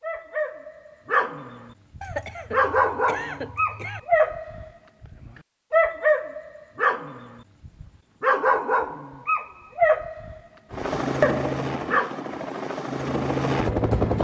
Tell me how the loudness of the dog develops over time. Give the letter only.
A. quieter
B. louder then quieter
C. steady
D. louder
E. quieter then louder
C.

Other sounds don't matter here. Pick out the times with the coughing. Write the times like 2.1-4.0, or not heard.
2.0-4.0.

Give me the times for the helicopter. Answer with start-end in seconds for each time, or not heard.
10.7-14.1.